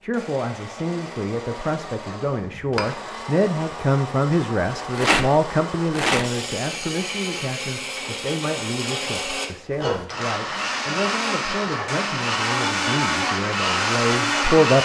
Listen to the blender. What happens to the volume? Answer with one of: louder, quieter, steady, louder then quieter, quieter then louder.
louder.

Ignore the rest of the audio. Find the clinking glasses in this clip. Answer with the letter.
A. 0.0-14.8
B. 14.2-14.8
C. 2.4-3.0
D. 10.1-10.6
C.